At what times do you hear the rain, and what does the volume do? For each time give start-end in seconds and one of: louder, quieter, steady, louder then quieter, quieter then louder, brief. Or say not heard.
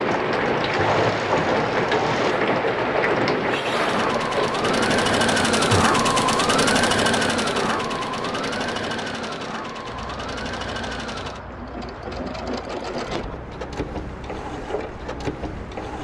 0.0-16.0 quieter.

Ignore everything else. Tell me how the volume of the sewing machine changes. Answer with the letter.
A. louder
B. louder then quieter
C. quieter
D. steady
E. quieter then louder
B.